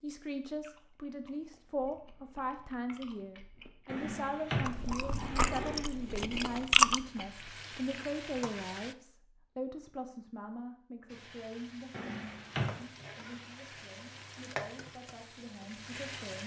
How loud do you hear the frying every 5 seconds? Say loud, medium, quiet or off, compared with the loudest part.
off, loud, loud, loud.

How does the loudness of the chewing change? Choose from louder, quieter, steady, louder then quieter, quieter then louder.
louder.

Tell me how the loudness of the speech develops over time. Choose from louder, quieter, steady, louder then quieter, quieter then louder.
quieter.